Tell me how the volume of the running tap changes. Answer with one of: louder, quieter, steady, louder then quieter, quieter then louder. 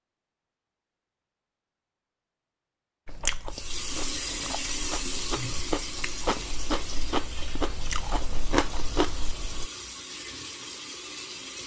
quieter.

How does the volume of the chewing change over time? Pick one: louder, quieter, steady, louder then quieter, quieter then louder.
louder.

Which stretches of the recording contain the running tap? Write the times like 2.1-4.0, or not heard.
3.5-11.6.